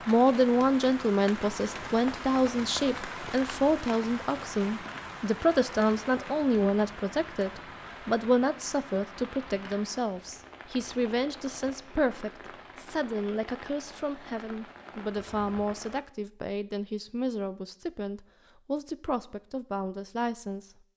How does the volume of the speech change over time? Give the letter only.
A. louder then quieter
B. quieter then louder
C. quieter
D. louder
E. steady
C.